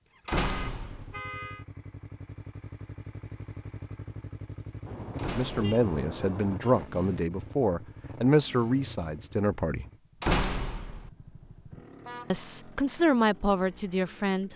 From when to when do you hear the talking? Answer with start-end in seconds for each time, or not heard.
5.3-9.8, 12.3-14.5.